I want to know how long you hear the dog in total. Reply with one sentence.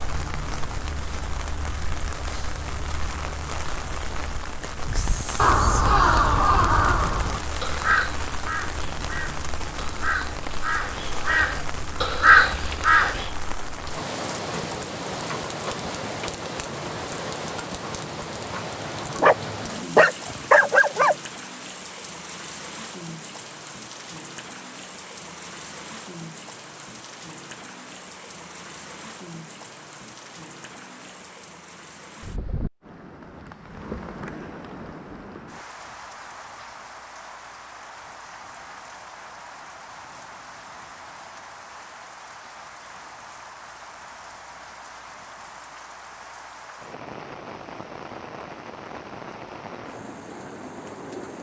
The dog can be heard for 2 seconds in total.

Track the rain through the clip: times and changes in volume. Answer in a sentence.
You can hear the rain from 0.0 to 51.3 s, getting quieter.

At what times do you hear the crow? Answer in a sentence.
You can hear the crow from 4.8 to 13.3 s.